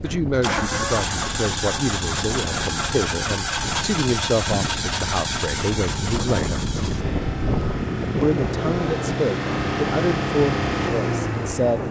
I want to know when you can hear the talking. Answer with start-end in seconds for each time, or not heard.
0.0-6.7, 8.2-11.8.